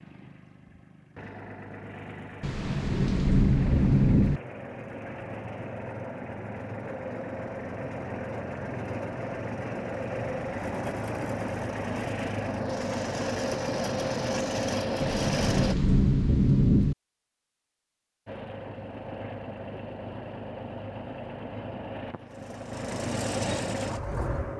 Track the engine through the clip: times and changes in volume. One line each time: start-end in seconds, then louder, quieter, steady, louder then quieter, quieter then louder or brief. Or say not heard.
0.0-15.8 louder
18.2-24.5 louder.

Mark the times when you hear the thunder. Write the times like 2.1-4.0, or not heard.
2.4-4.4, 15.0-16.9.